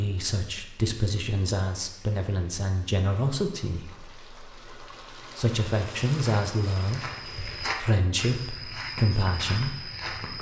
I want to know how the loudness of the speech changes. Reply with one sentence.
The volume of the speech stays about the same.